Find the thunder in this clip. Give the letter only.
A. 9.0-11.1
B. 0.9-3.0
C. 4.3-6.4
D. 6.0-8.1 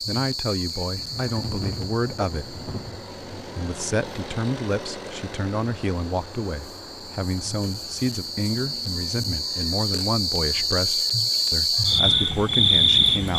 B.